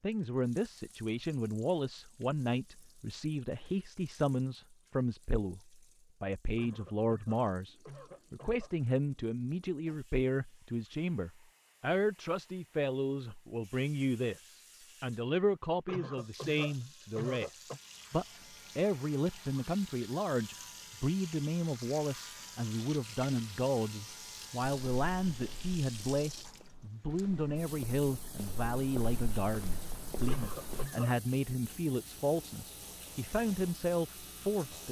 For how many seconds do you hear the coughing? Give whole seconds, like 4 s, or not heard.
5 s.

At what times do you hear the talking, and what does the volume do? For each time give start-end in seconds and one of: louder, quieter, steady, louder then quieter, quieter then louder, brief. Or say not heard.
0.0-34.8 steady.